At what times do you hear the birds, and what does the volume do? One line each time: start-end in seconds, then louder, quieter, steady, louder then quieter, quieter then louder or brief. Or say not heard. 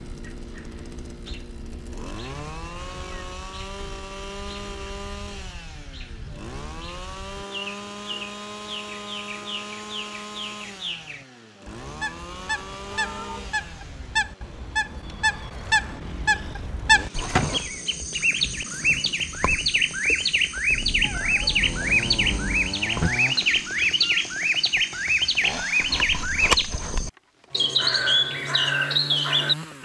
0.0-29.7 louder.